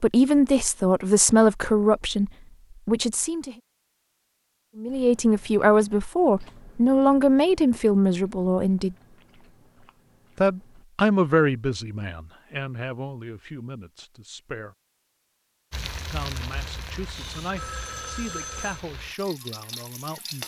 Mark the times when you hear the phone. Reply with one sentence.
You can hear the phone from 17.1 to 18.9 s.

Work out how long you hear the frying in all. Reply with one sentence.
The frying can be heard for 5 seconds in total.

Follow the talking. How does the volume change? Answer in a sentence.
The volume of the talking goes down.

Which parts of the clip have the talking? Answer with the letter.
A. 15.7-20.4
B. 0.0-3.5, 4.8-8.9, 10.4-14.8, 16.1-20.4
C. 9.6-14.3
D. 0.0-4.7
B.